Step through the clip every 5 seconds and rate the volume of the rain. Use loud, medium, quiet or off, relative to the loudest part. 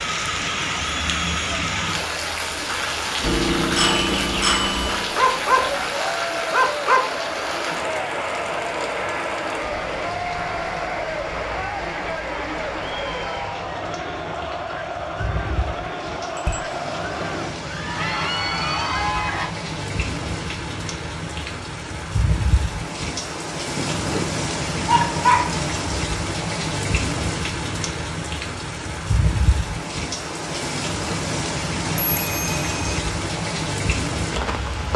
loud, loud, medium, medium, loud, loud, loud.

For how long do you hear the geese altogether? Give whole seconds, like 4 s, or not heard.
not heard.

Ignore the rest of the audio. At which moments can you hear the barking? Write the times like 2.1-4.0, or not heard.
5.2-7.0, 23.8-25.6.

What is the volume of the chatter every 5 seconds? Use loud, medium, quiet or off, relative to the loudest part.
medium, loud, loud, loud, off, off, off.